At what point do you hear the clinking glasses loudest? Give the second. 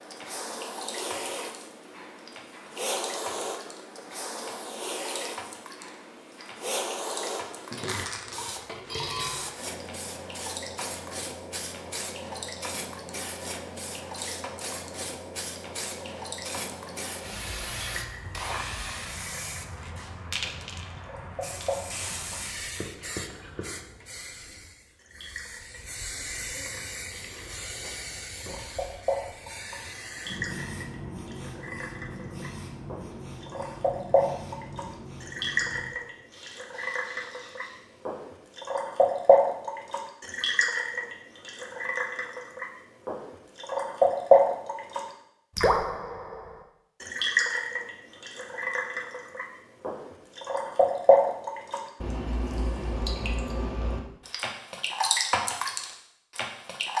9 s.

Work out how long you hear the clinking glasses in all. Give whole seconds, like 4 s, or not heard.
2 s.